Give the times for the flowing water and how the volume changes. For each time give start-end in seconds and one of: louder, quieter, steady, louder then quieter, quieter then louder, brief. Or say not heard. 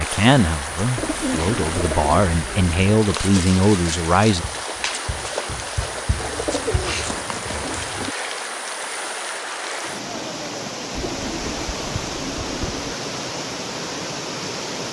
0.0-14.8 steady.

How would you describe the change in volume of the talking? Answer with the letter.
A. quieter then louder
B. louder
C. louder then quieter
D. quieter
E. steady
B.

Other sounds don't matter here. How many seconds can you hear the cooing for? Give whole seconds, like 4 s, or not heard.
6 s.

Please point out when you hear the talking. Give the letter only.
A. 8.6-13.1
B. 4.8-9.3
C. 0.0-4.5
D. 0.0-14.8
C.